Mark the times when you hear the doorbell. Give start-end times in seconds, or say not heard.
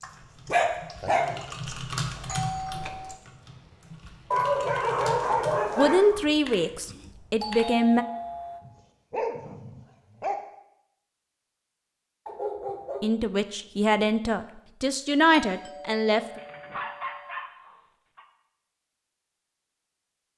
1.6-3.2, 7.3-8.6, 15.3-17.4.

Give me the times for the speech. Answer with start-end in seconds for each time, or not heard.
5.8-8.1, 13.0-16.4.